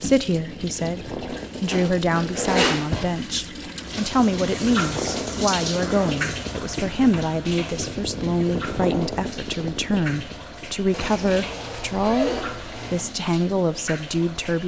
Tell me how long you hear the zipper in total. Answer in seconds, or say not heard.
5 s.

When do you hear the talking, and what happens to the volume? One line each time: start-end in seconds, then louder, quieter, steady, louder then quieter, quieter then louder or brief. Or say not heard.
0.0-14.6 steady.